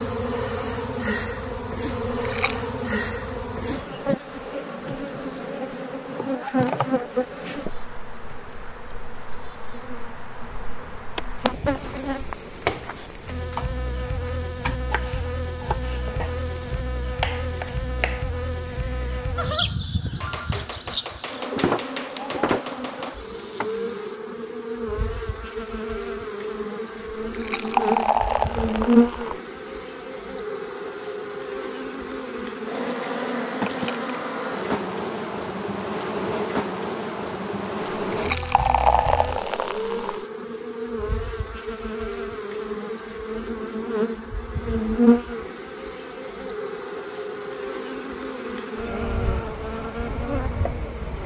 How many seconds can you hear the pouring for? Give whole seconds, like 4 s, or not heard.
5 s.